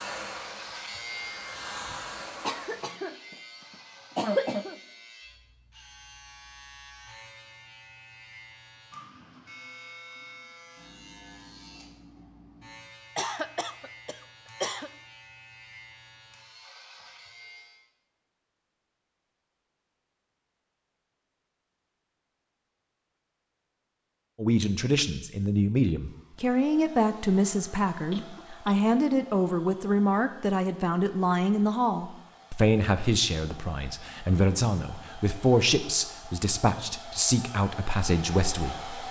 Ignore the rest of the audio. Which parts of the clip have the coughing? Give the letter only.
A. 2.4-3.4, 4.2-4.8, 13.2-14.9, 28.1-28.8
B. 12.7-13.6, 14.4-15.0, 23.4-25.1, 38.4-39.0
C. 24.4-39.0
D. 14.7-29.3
A.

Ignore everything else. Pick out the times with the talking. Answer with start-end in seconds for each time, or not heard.
24.4-39.0.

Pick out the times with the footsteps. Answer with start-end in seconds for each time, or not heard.
not heard.